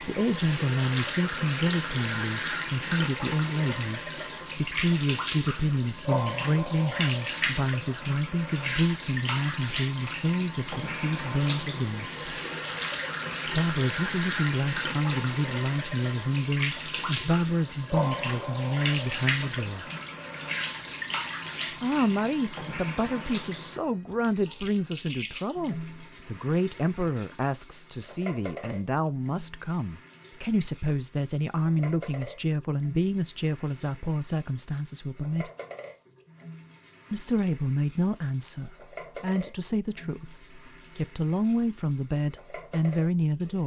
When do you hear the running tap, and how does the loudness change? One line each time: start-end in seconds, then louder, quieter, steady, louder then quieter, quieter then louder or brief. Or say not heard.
0.0-43.6 quieter.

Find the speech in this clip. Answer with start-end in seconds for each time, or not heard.
0.0-12.1, 13.4-19.9, 21.8-35.5, 37.1-43.6.